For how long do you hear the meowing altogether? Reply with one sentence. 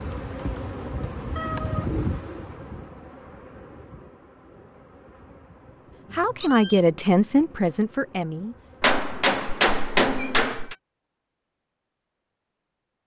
You can hear the meowing for 2 seconds altogether.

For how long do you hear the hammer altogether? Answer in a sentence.
The hammer can be heard for 2 seconds in total.